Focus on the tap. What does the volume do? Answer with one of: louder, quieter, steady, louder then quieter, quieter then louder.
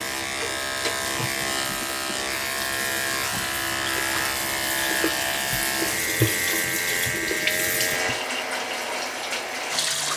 louder.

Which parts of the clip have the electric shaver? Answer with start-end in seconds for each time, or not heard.
0.0-10.1.